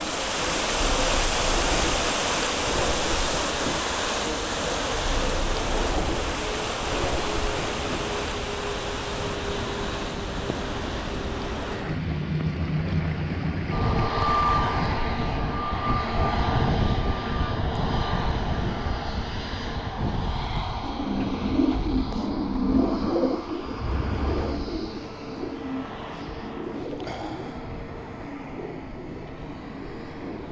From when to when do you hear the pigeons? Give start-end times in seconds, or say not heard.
0.0-8.1, 20.8-30.4.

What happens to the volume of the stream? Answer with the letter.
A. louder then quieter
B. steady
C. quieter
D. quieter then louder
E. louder
C.